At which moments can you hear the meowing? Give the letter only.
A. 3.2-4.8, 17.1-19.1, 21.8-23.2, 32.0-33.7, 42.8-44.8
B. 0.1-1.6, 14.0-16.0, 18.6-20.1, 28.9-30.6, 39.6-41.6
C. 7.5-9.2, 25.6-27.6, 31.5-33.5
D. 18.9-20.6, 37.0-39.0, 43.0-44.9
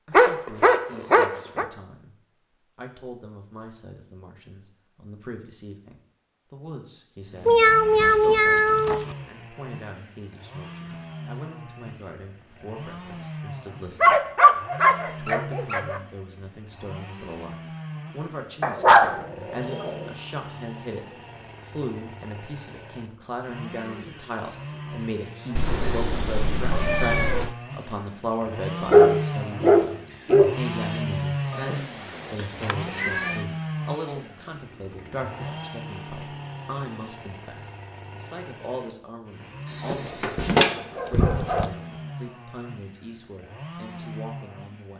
C.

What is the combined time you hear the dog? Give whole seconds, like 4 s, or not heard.
9 s.